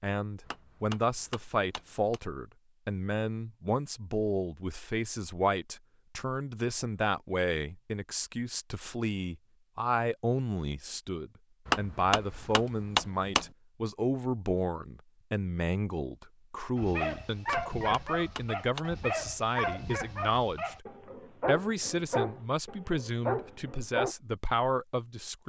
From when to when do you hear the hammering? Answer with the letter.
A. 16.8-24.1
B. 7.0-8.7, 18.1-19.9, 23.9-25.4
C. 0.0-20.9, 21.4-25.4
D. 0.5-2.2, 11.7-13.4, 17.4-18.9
D.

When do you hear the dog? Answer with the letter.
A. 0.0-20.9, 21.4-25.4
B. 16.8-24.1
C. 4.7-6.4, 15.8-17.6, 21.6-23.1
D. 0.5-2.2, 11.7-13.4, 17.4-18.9
B.